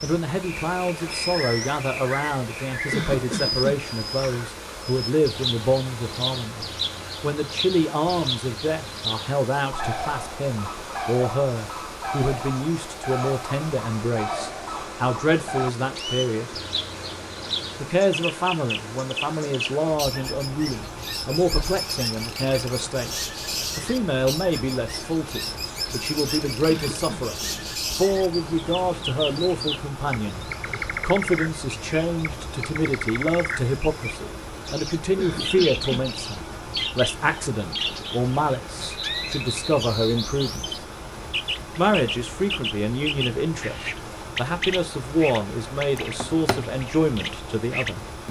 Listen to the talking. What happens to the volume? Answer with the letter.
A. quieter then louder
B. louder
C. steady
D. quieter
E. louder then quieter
C.